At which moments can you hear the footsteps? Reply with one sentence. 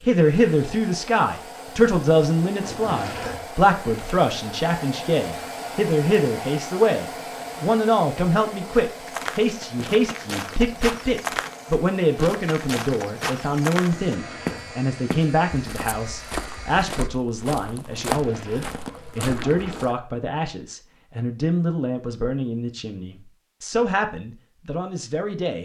The footsteps can be heard from 8.8 to 19.9 s.